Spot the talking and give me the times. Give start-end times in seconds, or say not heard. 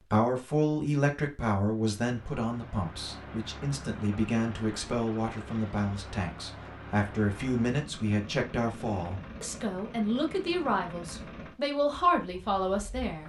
0.1-13.2.